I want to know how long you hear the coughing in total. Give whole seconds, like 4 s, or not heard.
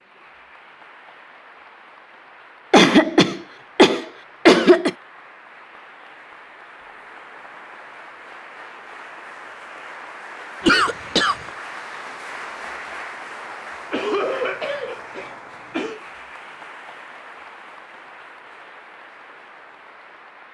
5 s.